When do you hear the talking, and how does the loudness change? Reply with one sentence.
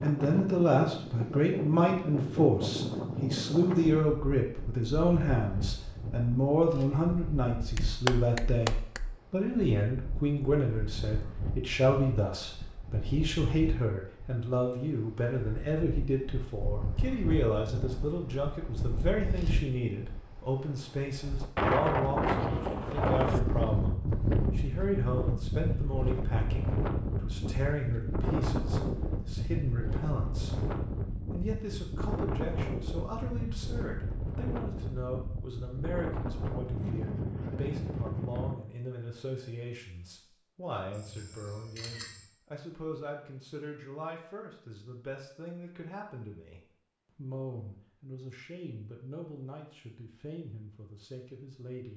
You can hear the talking from 0.0 to 51.9 s, getting quieter.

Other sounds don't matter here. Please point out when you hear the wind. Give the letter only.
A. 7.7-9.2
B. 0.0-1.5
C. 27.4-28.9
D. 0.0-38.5
D.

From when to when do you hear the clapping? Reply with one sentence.
The clapping can be heard from 7.7 to 9.2 s.